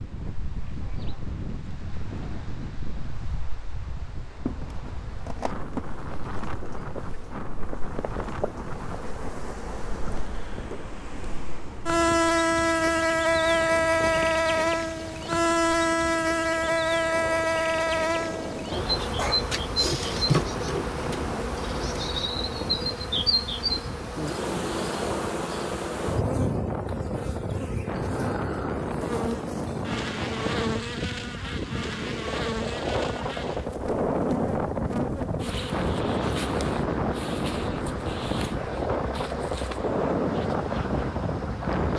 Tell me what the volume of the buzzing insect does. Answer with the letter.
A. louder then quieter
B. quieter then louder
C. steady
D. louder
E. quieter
A.